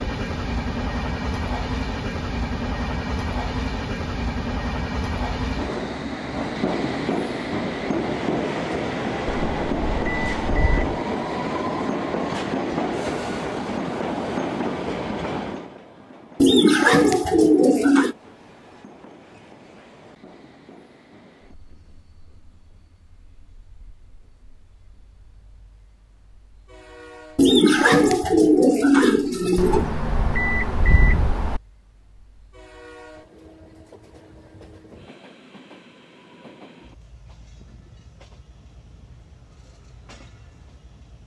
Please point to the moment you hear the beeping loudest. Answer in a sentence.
The loudest moment of the beeping is at 31 seconds.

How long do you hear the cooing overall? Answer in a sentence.
You can hear the cooing for 4 seconds altogether.